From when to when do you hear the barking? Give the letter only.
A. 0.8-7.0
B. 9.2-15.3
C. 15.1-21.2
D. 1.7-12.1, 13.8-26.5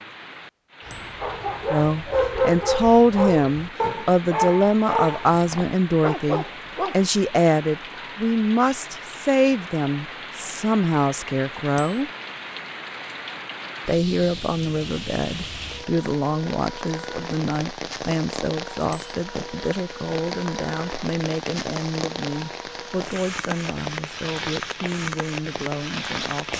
A.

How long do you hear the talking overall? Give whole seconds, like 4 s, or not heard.
23 s.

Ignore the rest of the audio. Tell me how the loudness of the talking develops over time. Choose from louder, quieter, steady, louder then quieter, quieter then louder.
quieter.